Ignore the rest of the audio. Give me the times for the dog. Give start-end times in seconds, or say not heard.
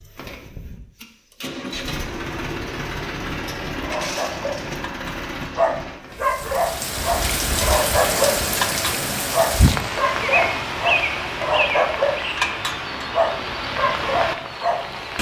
3.8-14.9.